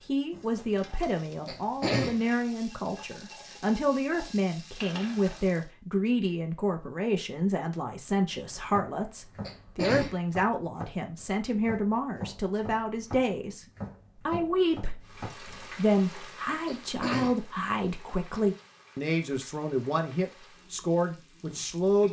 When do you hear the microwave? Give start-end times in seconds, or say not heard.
not heard.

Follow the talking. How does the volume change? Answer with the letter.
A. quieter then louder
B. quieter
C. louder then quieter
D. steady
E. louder
D.